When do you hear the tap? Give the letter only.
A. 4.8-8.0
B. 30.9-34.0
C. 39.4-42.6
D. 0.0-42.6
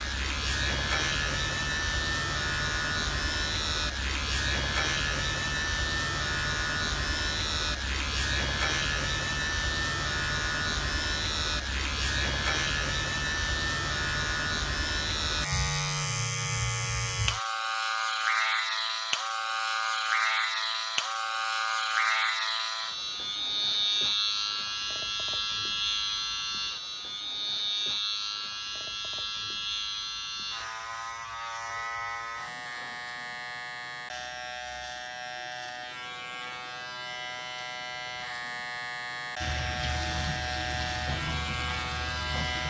C.